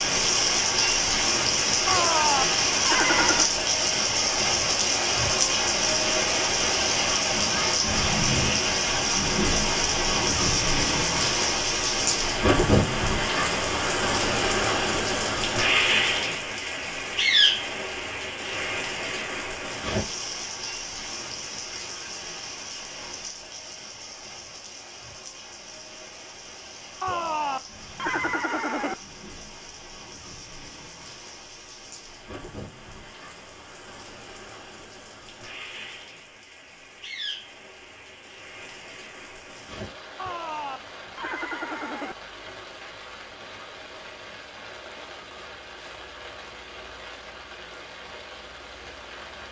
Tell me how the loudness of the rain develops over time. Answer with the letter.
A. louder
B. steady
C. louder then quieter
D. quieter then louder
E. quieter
E.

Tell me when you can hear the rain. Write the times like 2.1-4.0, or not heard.
0.0-49.4.